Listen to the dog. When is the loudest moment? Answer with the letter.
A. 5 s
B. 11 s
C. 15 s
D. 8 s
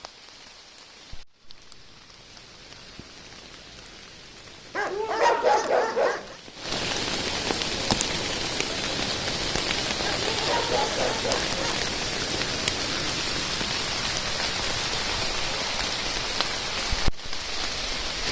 A.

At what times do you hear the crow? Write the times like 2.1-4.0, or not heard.
not heard.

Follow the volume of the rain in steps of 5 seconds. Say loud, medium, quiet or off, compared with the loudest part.
quiet, loud, loud, loud.